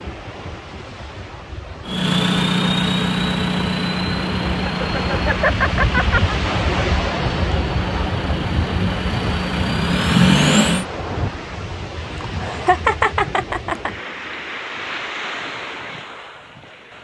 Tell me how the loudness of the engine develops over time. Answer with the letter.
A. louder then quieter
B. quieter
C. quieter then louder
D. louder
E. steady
C.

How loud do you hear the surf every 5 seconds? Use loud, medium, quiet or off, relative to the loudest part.
medium, loud, medium, medium.